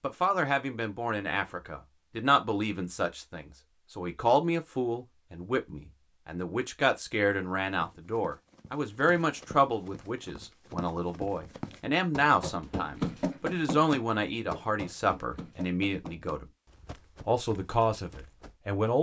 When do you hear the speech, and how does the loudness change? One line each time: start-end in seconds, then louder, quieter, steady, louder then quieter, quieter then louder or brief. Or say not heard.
0.0-16.5 steady
17.2-18.9 brief.